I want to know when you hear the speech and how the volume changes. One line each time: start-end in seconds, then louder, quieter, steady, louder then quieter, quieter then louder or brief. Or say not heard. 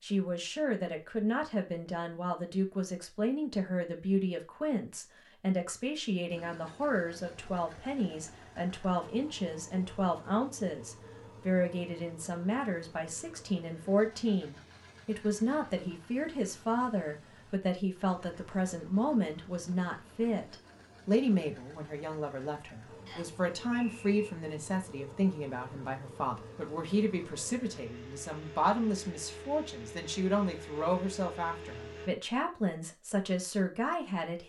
0.0-34.4 steady.